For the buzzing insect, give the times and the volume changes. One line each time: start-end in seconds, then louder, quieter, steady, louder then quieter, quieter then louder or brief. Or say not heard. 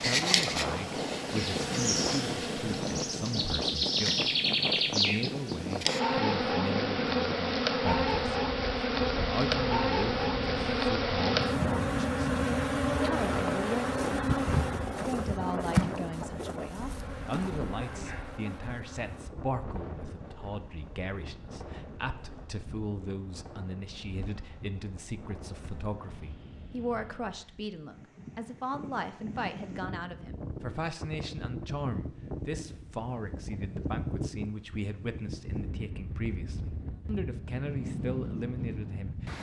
0.0-26.4 quieter.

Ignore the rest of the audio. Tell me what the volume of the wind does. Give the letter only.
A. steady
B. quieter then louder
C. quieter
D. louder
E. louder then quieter
B.